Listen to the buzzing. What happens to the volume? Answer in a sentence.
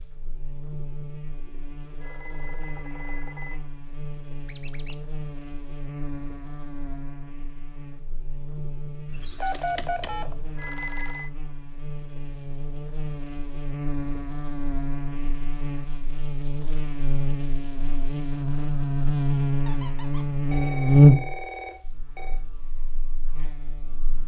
The volume of the buzzing goes up.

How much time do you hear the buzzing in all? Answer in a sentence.
The buzzing can be heard for 24 seconds in total.